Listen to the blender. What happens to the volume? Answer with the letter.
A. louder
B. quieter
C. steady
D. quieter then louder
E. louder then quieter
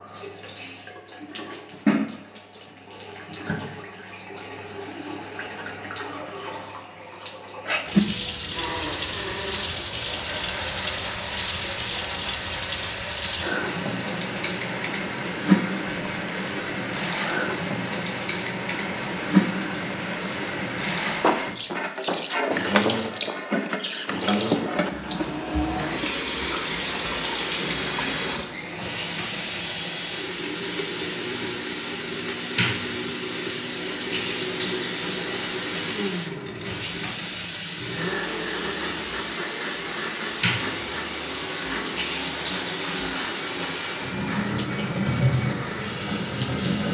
C.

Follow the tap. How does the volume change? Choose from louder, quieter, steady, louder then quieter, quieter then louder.
steady.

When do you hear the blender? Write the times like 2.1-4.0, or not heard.
8.5-46.9.